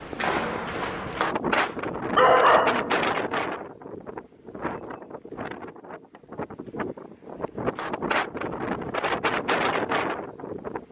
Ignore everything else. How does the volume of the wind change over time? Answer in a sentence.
The loudness of the wind goes down, then up.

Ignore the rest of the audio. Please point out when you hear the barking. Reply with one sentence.
The barking can be heard from 1.4 to 3.1 s.